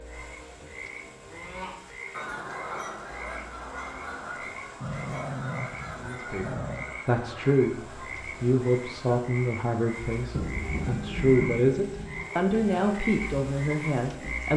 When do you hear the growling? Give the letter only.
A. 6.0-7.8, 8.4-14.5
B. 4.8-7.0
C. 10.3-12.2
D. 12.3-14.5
B.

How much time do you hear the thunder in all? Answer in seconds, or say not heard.
2 s.